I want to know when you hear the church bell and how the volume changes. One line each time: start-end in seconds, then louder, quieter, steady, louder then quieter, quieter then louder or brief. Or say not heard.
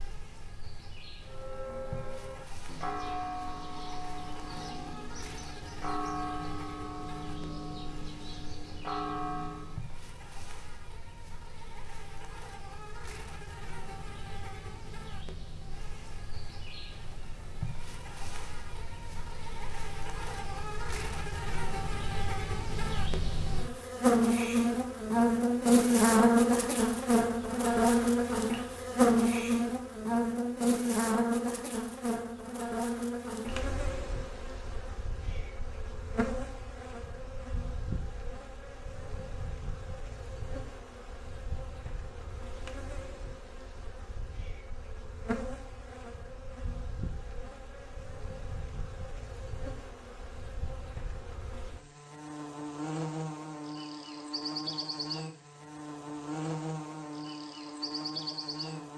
1.2-9.9 steady.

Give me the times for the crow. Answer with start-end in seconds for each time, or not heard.
not heard.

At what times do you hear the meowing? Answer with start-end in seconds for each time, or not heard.
not heard.